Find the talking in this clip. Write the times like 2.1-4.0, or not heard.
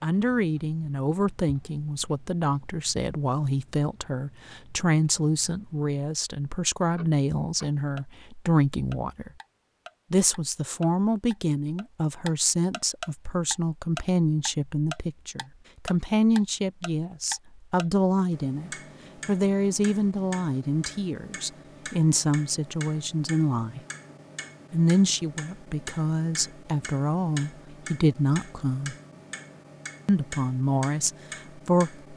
0.0-9.3, 10.1-23.8, 24.7-28.9, 30.1-32.1.